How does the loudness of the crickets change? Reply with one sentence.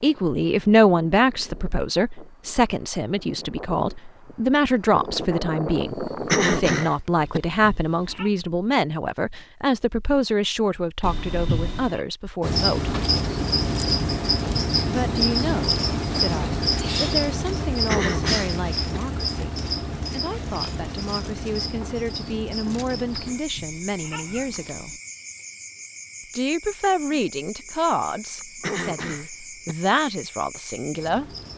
The volume of the crickets goes down.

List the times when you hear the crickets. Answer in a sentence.
You can hear the crickets from 12.4 to 31.5 s.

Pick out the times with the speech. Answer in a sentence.
You can hear the speech from 0.0 to 12.9 s, from 14.8 to 25.0 s and from 26.4 to 31.2 s.